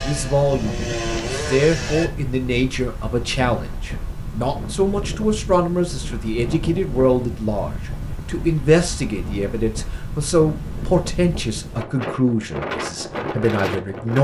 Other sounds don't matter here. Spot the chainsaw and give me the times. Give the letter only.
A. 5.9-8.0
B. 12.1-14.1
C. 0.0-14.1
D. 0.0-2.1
D.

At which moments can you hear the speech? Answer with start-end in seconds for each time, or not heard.
0.0-14.1.